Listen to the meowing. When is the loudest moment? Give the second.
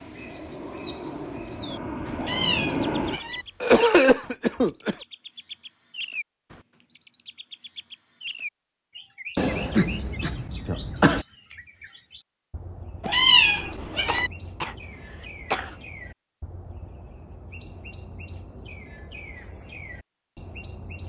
13 s.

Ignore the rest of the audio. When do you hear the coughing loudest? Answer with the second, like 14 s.
4 s.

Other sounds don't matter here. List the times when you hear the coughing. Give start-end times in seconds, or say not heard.
3.1-5.0, 9.3-11.2, 14.1-15.8.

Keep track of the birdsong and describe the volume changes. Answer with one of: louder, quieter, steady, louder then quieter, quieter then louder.
quieter.